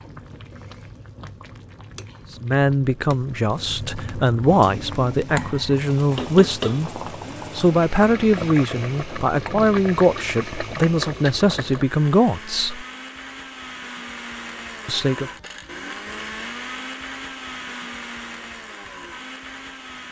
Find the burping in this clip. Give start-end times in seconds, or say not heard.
not heard.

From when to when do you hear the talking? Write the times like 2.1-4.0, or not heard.
2.4-12.8, 14.8-15.3.